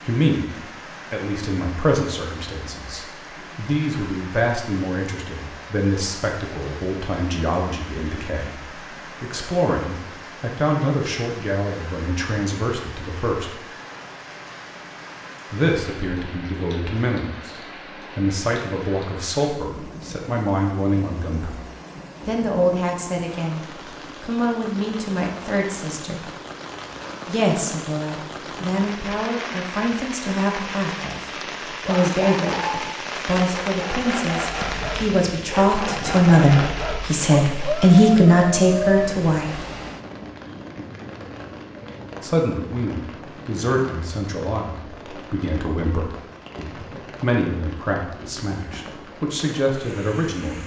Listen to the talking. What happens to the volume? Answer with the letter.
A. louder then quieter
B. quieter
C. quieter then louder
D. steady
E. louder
A.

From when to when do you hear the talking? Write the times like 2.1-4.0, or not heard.
0.1-13.6, 15.5-21.6, 22.2-26.2, 27.2-39.6, 42.2-50.6.